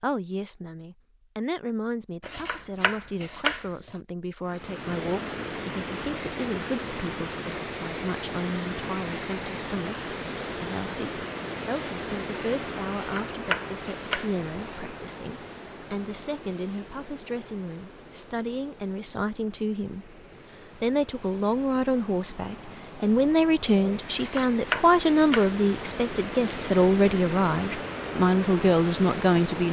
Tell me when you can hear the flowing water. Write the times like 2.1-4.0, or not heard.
4.4-29.6.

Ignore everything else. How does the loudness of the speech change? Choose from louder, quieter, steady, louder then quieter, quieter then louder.
louder.